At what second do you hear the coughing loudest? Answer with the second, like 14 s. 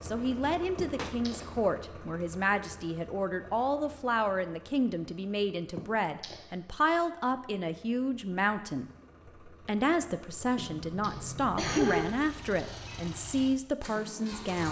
12 s.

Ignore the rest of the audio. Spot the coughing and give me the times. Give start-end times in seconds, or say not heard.
0.8-1.4, 5.8-6.4, 10.6-13.1.